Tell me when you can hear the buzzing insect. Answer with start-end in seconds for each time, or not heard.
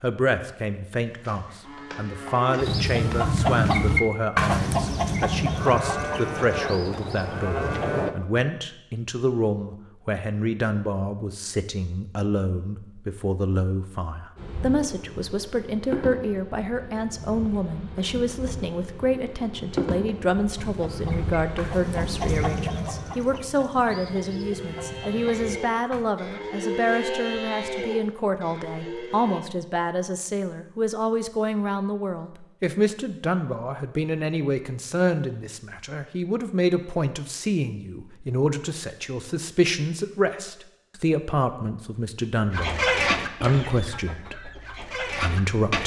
14.3-22.5.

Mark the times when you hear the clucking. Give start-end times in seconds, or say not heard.
2.5-8.1, 20.6-26.1, 42.5-45.8.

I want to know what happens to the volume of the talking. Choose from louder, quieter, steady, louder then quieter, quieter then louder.
steady.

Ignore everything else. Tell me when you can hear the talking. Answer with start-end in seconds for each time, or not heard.
0.0-45.8.